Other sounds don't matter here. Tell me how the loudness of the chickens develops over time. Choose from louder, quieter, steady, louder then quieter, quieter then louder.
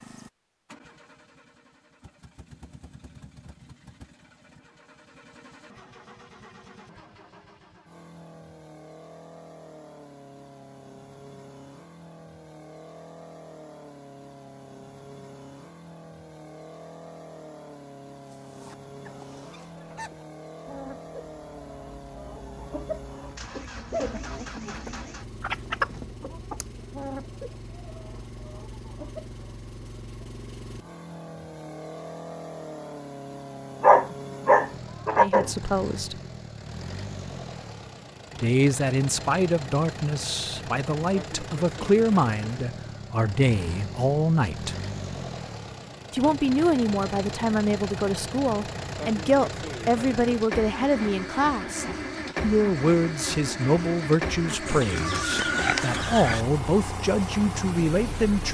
louder then quieter.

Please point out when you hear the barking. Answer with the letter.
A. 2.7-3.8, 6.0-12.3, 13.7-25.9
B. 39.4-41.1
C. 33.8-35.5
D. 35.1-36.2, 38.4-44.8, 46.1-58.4
C.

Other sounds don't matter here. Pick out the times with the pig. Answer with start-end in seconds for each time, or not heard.
54.6-56.5.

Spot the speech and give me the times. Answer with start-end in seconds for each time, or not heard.
35.1-36.2, 38.4-44.8, 46.1-58.4.